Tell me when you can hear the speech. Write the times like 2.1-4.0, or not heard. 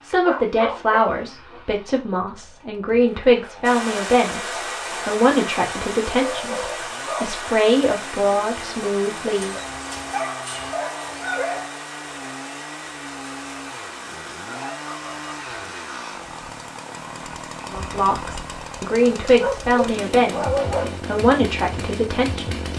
0.0-9.7, 17.7-22.5.